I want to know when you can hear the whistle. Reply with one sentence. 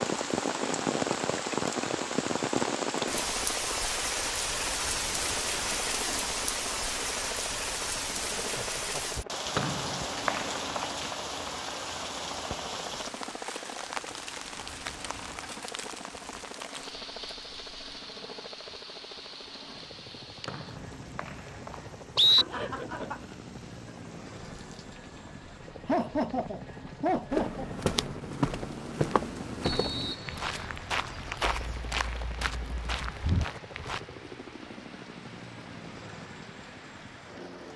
The whistle can be heard from 9.6 to 10.8 s, from 20.4 to 22.4 s and from 29.6 to 30.8 s.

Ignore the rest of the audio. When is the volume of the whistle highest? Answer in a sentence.
The volume of the whistle peaks at 22 seconds.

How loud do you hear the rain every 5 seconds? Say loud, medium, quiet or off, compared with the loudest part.
loud, loud, medium, quiet, quiet, quiet, quiet, quiet.